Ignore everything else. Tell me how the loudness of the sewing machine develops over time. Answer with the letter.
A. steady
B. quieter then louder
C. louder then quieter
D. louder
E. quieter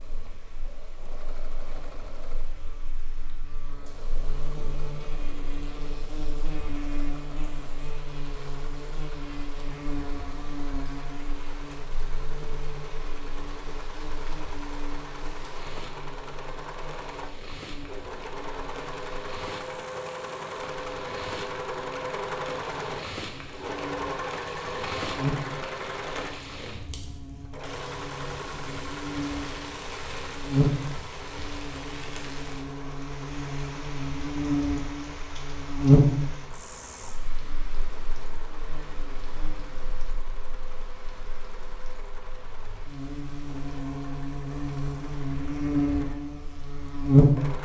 C.